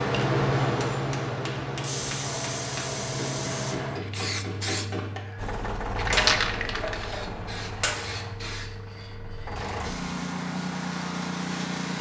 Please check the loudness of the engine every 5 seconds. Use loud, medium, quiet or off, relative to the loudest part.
off, medium, loud.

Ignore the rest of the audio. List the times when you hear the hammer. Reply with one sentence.
You can hear the hammer from 0.7 to 8.0 s.